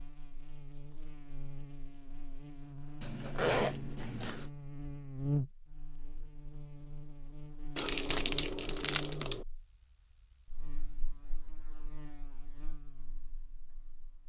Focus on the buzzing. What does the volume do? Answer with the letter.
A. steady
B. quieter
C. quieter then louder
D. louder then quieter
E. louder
D.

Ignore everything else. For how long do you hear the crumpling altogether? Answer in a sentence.
The crumpling can be heard for 2 seconds in total.